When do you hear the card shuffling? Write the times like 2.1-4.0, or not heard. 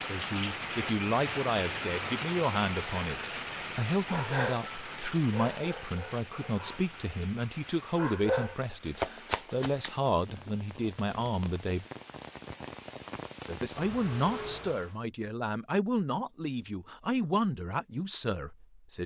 8.8-10.5.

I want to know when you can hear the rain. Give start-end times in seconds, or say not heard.
0.0-14.9.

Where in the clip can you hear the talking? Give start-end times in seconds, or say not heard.
0.1-11.8, 13.4-19.0.